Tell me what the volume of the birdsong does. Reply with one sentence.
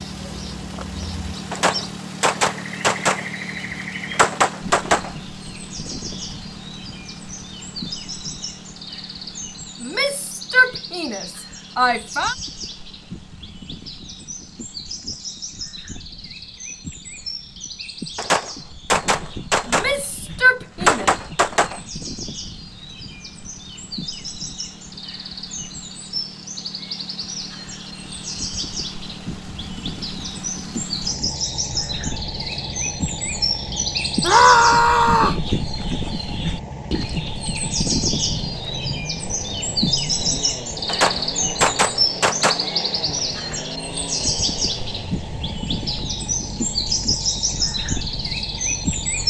The loudness of the birdsong goes up.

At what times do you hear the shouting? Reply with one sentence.
The shouting can be heard from 9.8 to 12.3 s, from 19.6 to 21.1 s and from 34.2 to 35.4 s.